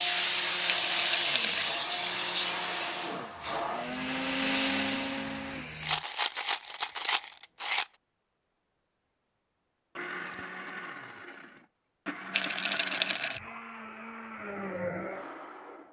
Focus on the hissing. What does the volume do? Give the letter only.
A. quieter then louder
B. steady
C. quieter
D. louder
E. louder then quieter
C.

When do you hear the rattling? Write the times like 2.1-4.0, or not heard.
0.7-1.8, 5.8-7.9, 12.3-13.4.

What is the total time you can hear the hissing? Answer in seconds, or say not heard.
6 s.